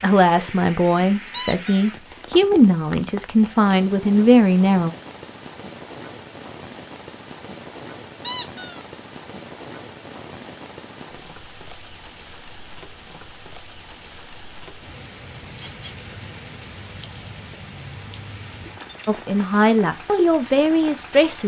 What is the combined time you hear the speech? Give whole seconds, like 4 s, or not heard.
7 s.